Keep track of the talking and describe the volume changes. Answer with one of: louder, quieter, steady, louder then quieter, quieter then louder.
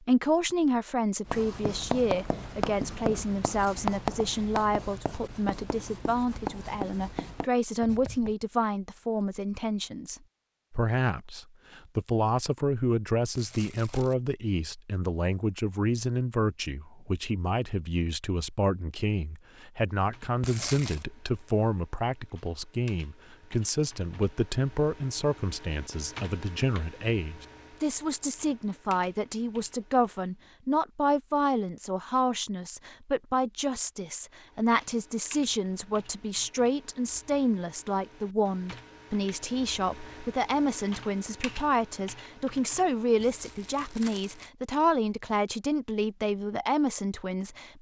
steady.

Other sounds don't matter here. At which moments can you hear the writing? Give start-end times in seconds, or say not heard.
1.2-8.3.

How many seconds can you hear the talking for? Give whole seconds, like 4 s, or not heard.
48 s.